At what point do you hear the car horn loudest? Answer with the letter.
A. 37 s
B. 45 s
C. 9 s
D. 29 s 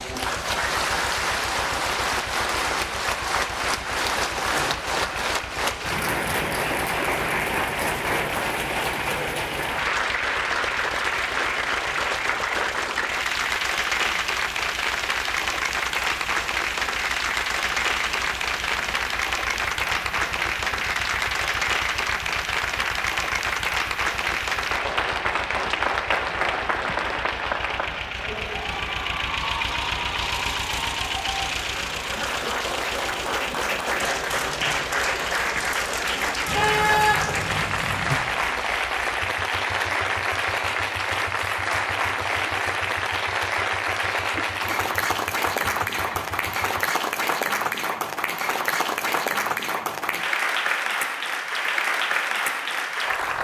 A.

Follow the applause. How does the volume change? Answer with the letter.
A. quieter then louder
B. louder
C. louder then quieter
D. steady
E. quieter
D.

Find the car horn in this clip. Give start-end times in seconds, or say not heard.
36.5-38.2.